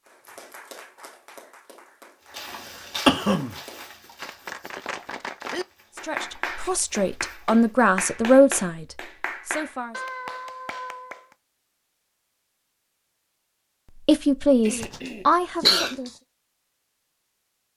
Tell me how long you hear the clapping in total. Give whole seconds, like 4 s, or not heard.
11 s.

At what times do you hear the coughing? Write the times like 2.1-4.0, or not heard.
3.0-3.5, 14.7-16.1.